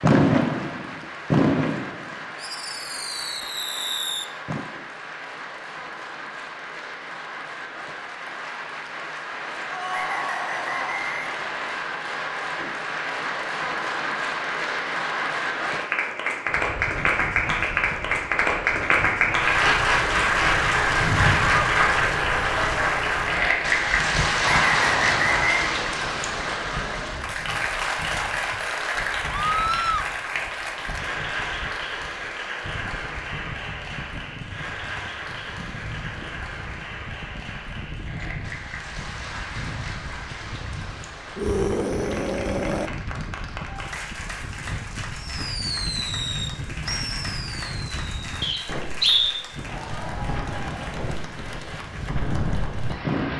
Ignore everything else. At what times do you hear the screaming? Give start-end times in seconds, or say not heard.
9.7-11.1, 29.3-30.1, 41.4-42.9.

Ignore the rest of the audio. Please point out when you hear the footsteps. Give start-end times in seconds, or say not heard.
not heard.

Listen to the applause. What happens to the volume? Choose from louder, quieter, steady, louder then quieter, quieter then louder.
louder then quieter.